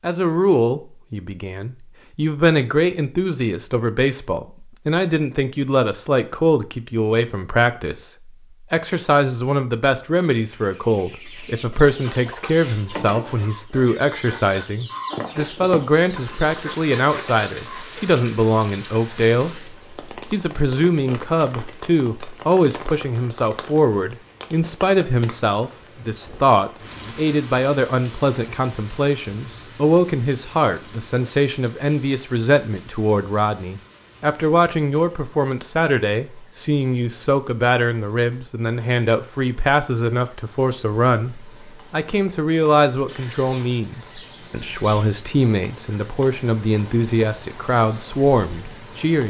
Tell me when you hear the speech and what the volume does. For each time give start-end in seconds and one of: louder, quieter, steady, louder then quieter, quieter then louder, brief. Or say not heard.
0.0-49.2 steady.